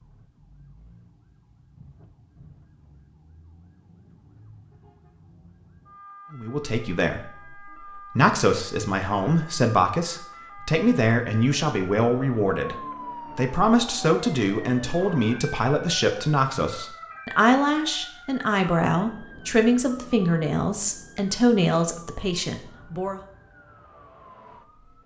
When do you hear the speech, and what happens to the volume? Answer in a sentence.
The speech can be heard from 6.3 to 23.2 s, at a steady volume.